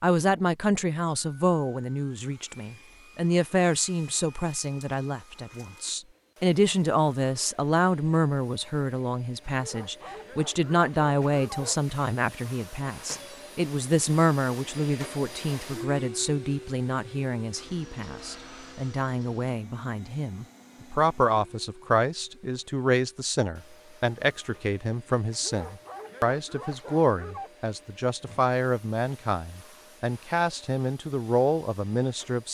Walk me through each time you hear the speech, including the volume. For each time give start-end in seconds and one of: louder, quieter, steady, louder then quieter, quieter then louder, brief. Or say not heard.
0.0-32.4 steady.